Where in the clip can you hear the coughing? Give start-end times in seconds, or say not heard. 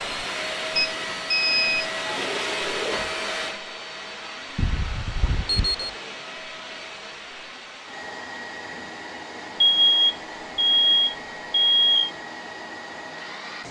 not heard.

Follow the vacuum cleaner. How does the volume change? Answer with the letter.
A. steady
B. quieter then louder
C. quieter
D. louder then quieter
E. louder
C.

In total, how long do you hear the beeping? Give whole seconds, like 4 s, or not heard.
5 s.